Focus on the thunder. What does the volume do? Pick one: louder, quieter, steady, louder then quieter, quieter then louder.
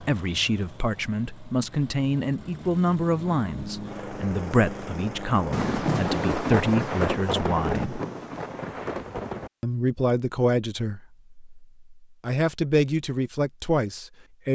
quieter.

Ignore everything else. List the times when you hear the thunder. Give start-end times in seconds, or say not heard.
5.5-9.5.